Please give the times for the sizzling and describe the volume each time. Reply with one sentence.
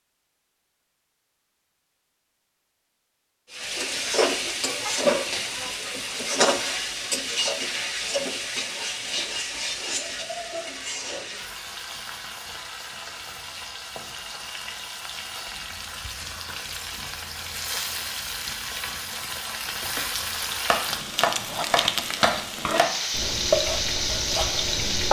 You can hear the sizzling from 3.5 to 25.0 s, getting quieter then louder.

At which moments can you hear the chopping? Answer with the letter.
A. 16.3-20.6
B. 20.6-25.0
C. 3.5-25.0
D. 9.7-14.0
B.